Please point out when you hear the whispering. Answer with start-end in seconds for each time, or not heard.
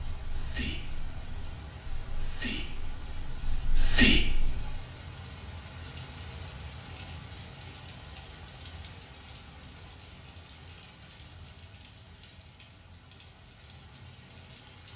0.1-4.8.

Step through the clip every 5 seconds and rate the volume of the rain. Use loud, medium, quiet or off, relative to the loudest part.
loud, loud, medium.